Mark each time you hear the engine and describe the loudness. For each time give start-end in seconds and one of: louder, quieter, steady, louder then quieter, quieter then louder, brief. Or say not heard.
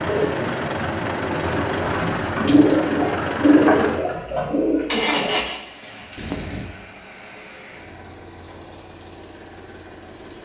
0.0-10.4 quieter.